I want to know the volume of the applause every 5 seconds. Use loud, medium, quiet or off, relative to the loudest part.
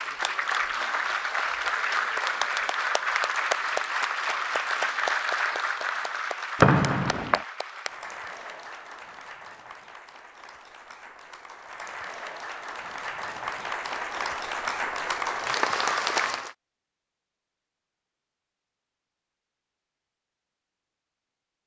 loud, medium, medium, loud, off.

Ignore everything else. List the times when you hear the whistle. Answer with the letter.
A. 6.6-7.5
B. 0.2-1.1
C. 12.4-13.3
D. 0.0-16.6
A.